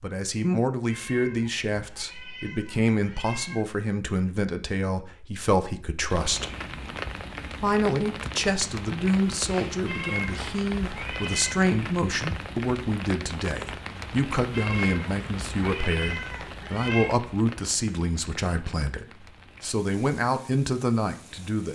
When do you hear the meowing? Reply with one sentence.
The meowing can be heard from 0.9 to 3.6 s, from 9.8 to 11.6 s and from 14.5 to 17.1 s.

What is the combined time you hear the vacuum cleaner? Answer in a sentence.
The vacuum cleaner can't be heard in this clip.